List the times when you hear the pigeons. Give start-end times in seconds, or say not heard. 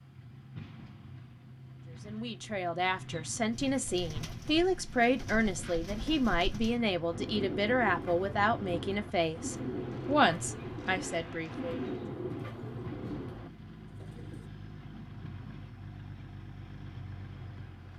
3.5-14.4.